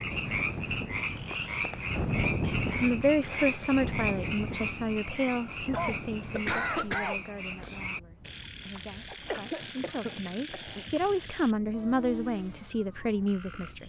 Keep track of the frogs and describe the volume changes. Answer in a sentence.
The loudness of the frogs goes down.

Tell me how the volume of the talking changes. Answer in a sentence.
The volume of the talking goes down, then up.